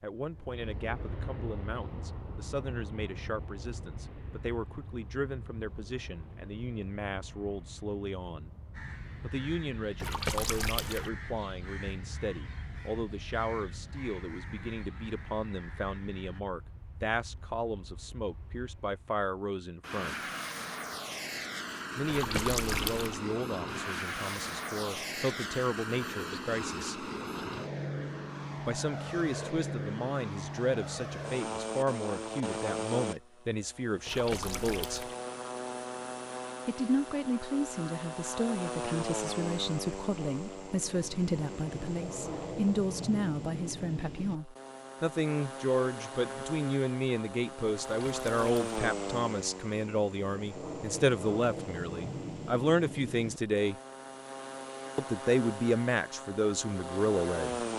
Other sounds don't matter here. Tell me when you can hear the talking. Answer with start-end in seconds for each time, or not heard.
0.0-8.6, 9.2-20.1, 21.9-27.1, 28.6-35.0, 36.6-53.8, 55.0-57.6.